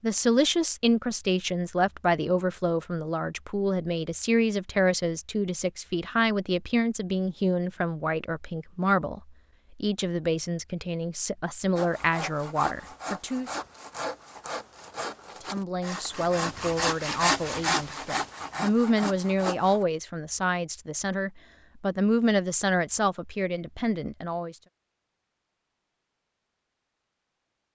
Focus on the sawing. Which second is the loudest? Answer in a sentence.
The loudest moment of the sawing is at 17 seconds.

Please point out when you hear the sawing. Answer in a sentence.
You can hear the sawing from 11.8 to 19.9 s.